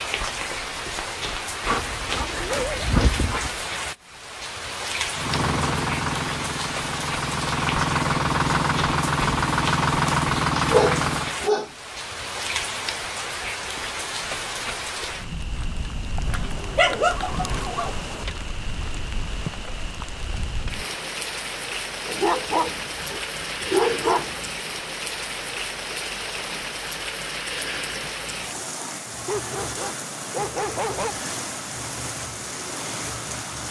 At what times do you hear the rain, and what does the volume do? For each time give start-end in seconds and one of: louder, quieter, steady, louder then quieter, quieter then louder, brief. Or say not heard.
0.0-33.6 steady.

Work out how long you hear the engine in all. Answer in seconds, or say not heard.
6 s.